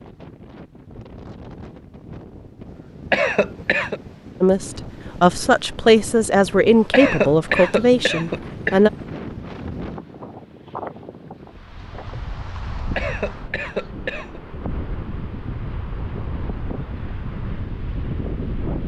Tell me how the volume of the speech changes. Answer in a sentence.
The loudness of the speech stays about the same.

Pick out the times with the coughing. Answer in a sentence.
You can hear the coughing from 3.1 to 4.0 s, from 6.9 to 8.8 s and from 12.9 to 14.4 s.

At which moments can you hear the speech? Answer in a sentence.
The speech can be heard from 4.4 to 8.9 s.